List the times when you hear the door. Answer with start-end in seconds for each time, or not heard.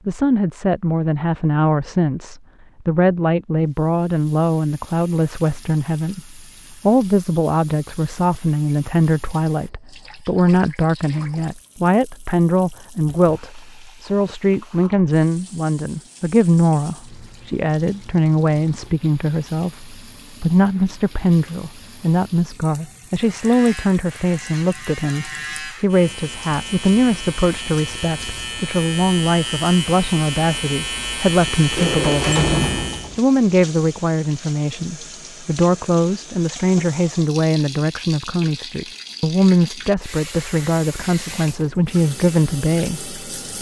31.8-33.2.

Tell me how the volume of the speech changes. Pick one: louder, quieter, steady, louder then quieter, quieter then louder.
steady.